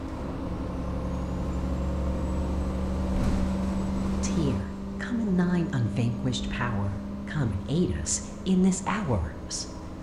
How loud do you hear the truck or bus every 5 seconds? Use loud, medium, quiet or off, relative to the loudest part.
loud, medium.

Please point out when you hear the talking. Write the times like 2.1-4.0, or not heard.
4.2-9.7.